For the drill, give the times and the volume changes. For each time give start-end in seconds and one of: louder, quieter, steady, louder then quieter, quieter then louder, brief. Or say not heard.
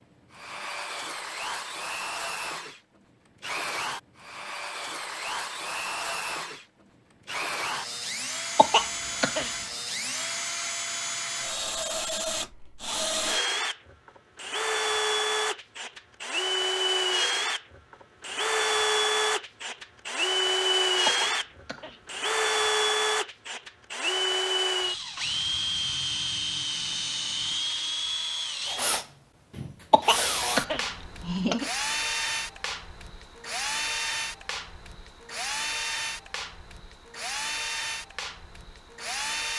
0.0-39.5 louder then quieter.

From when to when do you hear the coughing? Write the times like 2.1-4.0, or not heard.
8.6-9.5, 21.1-21.9, 29.9-31.7.